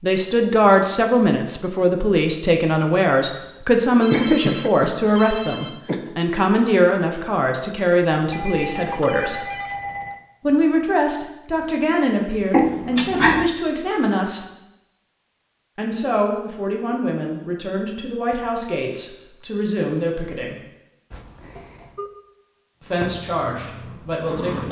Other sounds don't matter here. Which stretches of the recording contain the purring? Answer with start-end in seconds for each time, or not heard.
22.9-24.6.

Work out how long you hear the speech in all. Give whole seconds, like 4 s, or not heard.
20 s.